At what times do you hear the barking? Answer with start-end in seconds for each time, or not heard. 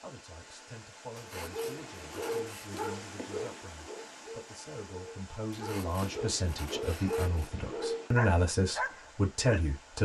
1.4-9.7.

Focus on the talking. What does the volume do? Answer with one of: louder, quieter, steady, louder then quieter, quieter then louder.
louder.